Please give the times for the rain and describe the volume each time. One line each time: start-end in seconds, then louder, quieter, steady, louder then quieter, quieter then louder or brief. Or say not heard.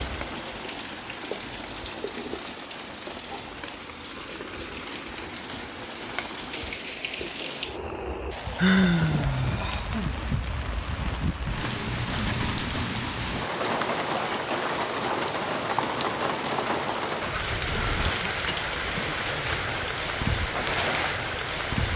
0.0-21.9 louder.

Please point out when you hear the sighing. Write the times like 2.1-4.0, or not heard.
7.4-9.9.